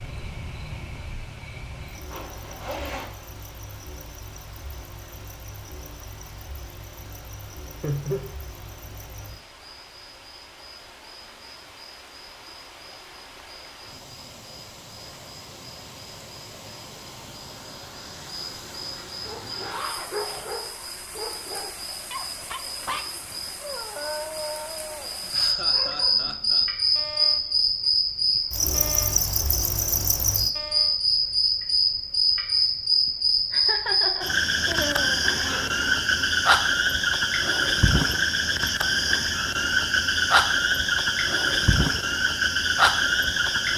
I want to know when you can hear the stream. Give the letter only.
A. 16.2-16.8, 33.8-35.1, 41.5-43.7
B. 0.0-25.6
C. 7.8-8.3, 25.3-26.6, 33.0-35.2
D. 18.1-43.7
B.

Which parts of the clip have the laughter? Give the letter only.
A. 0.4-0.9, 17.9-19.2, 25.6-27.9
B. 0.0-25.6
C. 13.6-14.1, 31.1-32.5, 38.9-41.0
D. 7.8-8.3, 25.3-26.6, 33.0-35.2
D.